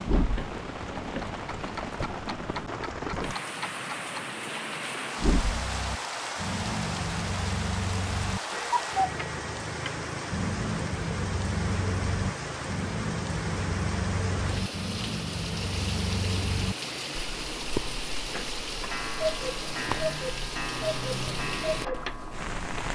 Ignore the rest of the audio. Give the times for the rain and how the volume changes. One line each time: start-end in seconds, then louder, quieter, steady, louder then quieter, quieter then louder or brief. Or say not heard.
0.0-22.9 steady.